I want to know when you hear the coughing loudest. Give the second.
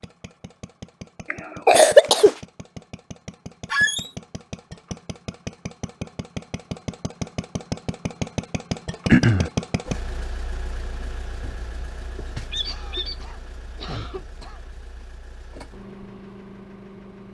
2 s.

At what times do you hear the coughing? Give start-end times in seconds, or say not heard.
1.3-2.4, 9.1-9.5, 12.7-14.6.